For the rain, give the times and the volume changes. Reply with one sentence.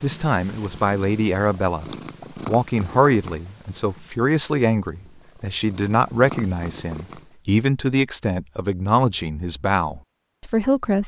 The rain can't be heard in this clip.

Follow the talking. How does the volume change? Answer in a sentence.
The loudness of the talking stays about the same.